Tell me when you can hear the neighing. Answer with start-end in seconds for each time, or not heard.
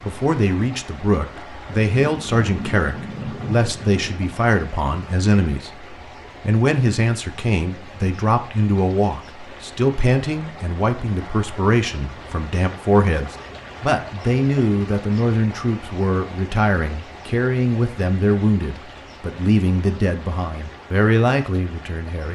not heard.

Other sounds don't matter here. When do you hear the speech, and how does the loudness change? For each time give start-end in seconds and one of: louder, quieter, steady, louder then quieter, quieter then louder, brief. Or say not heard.
0.0-22.3 steady.